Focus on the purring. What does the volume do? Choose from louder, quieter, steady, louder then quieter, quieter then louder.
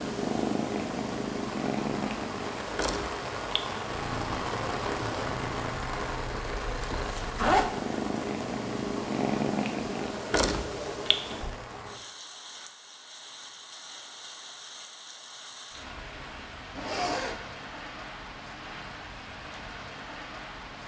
quieter then louder.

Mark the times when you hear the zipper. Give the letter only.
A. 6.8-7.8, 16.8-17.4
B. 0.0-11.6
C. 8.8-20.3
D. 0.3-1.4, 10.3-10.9
A.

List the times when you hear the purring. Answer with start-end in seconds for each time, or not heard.
0.0-11.6.